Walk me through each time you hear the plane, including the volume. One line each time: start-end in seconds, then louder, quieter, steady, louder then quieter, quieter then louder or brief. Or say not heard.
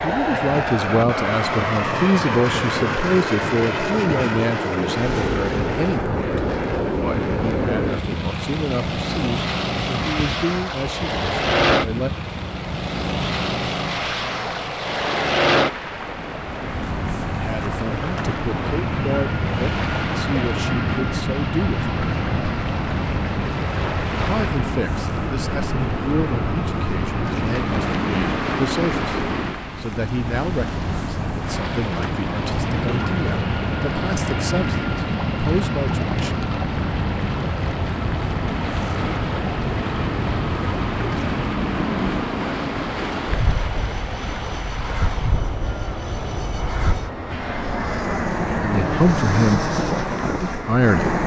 0.0-51.2 steady.